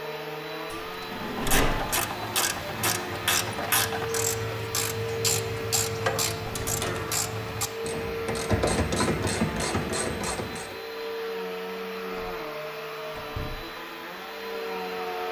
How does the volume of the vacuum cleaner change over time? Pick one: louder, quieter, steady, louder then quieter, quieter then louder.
steady.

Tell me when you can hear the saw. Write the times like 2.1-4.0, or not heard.
not heard.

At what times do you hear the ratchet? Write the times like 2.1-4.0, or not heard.
1.0-10.8.